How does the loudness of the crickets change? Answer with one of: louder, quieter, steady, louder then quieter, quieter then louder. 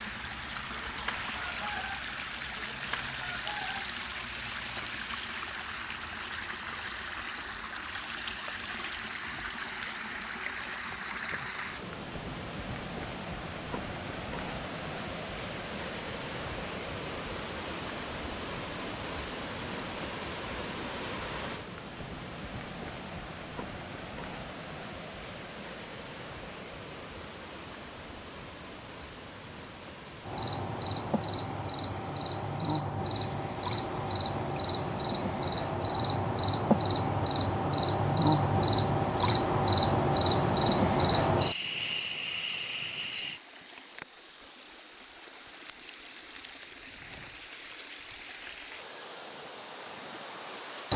louder.